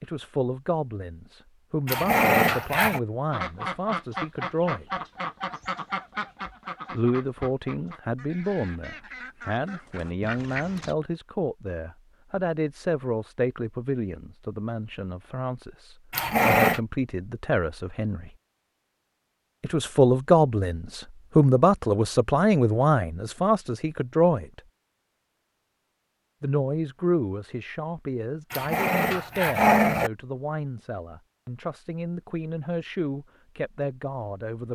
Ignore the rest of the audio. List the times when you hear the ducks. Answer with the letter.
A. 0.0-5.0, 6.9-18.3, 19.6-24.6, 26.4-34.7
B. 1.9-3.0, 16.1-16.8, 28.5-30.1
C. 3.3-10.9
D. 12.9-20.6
C.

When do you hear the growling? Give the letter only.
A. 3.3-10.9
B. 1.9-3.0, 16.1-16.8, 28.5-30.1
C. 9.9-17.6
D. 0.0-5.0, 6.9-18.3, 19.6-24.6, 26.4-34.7
B.